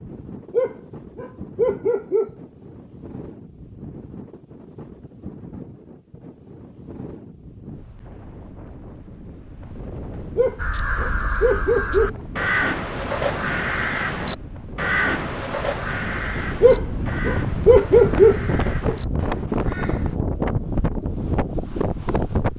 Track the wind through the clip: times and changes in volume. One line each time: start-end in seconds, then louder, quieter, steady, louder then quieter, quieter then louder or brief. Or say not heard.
0.0-22.5 louder.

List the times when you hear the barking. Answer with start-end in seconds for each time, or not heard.
0.5-2.3, 10.3-12.2, 16.6-18.9.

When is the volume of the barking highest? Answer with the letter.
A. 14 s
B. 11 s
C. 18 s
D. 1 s
C.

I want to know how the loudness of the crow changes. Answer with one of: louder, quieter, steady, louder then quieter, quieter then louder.
quieter.